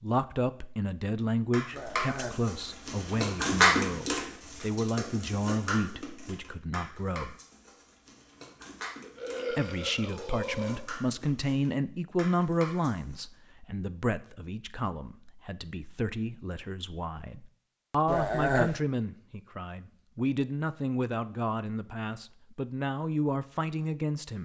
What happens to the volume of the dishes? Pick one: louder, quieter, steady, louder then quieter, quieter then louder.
quieter.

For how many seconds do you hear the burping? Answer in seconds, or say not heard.
3 s.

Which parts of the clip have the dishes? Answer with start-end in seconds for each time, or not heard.
1.5-13.2.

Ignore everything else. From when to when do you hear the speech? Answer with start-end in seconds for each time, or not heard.
0.0-7.3, 9.5-24.4.